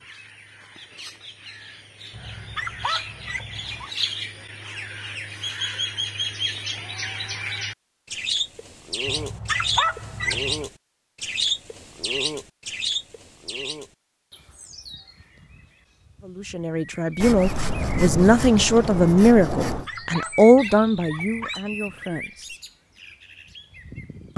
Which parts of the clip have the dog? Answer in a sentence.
The dog can be heard from 2.1 to 3.9 s, from 9.1 to 10.7 s and from 19.6 to 21.6 s.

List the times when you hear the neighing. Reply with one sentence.
The neighing can't be heard in this clip.